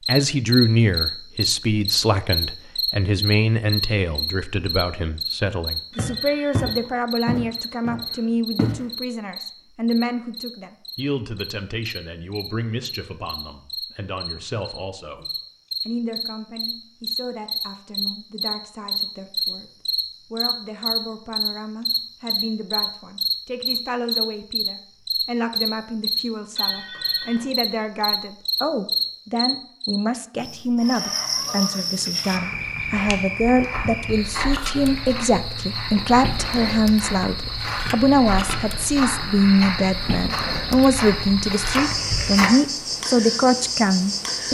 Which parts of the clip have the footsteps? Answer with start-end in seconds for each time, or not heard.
6.0-8.8, 32.3-42.5.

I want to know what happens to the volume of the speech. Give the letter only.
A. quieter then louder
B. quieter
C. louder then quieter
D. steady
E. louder
A.